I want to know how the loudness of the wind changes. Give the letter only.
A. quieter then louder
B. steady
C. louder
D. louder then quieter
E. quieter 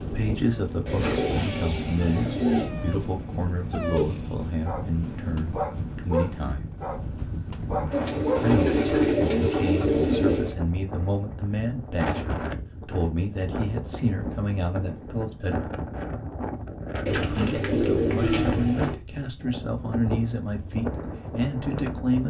B.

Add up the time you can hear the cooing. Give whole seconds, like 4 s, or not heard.
6 s.